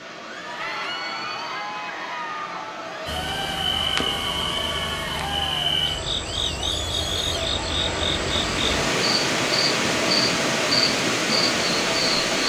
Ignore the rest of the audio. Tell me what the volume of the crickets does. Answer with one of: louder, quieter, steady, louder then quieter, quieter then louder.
steady.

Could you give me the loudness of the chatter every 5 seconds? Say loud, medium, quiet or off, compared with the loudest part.
loud, loud, off.